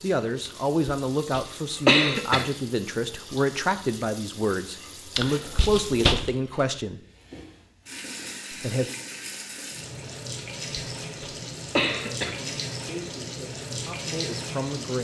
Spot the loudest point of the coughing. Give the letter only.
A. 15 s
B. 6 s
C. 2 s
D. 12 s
C.